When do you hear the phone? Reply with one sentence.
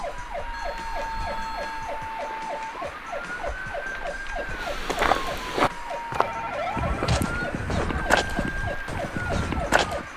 The phone can be heard from 0.5 to 1.9 s and from 6.2 to 8.2 s.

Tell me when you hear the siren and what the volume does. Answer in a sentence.
You can hear the siren from 0.0 to 10.1 s, at a steady volume.